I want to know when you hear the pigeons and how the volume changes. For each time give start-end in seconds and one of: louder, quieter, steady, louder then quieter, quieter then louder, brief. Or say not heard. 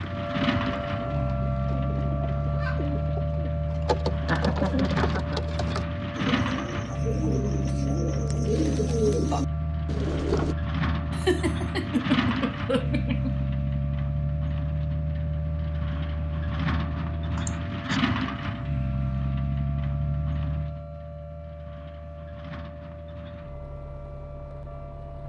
0.1-10.6 louder.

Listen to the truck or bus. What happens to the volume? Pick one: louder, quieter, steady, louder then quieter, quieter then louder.
quieter.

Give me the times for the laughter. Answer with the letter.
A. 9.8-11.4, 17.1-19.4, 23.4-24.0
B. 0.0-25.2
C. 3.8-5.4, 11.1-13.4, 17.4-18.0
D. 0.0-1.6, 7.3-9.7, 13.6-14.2
C.